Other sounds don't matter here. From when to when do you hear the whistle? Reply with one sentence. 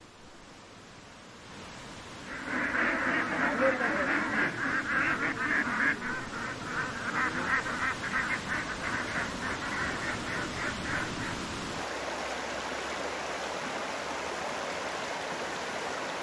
You can't hear the whistle here.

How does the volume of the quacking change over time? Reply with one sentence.
The volume of the quacking goes down.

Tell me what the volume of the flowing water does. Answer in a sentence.
The loudness of the flowing water goes up.